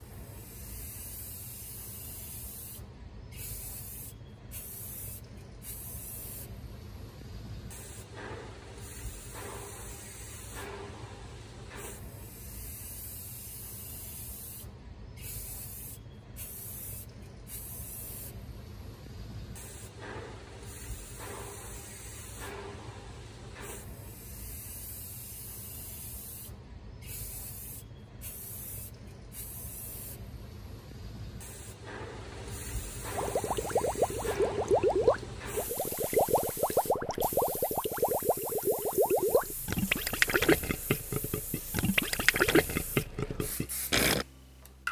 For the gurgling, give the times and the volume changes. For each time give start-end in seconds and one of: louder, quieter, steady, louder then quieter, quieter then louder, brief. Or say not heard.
33.1-44.2 steady.